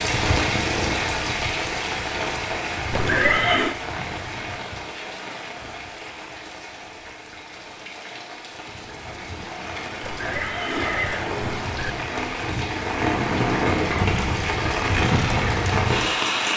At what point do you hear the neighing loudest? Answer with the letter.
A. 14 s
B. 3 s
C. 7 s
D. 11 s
B.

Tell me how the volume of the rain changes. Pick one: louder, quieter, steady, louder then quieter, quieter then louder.
quieter then louder.